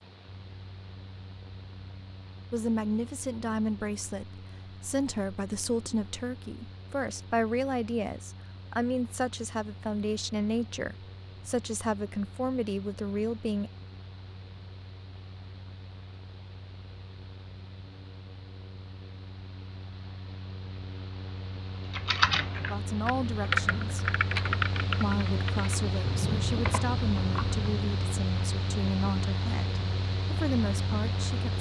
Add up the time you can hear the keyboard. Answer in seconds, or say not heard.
6 s.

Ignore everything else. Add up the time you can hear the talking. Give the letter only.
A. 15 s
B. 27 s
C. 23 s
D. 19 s
D.